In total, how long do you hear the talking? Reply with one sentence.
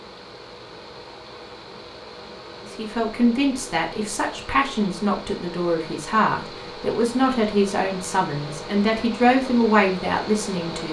You can hear the talking for 8 seconds altogether.